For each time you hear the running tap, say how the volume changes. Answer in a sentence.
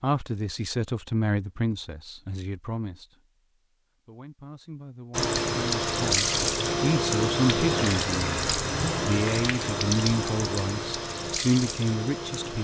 You can hear the running tap from 5.1 to 12.6 s, getting quieter.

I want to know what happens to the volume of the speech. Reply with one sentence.
The loudness of the speech goes down, then up.